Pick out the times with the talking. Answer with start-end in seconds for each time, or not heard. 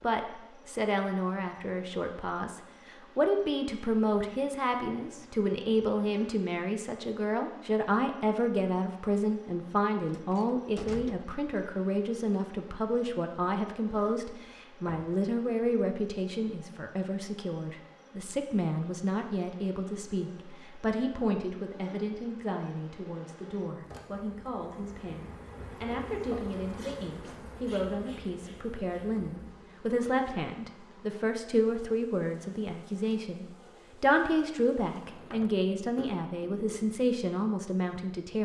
0.0-38.4.